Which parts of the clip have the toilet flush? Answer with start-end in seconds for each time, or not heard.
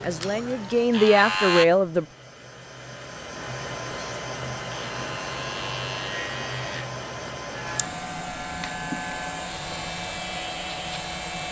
not heard.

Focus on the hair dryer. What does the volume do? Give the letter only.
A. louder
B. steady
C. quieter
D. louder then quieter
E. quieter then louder
A.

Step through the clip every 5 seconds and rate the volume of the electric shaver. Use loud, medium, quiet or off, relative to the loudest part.
loud, medium, medium.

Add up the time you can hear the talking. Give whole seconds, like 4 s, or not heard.
2 s.